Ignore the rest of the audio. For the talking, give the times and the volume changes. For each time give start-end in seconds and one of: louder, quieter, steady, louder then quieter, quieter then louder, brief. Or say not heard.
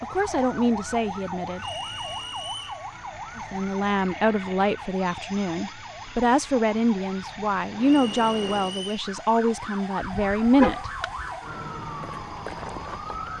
0.0-1.6 brief
3.4-10.8 steady.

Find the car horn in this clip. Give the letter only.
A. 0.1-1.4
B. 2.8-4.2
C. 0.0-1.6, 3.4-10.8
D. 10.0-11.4
D.